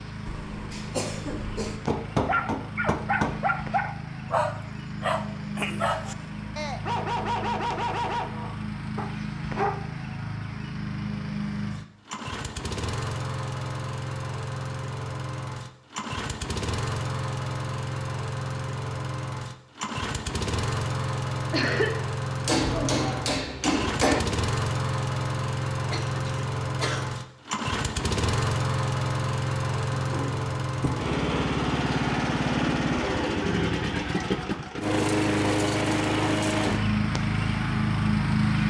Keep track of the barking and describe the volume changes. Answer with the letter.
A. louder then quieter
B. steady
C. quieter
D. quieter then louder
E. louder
C.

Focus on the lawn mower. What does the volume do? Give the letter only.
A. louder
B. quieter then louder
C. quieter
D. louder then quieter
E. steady
A.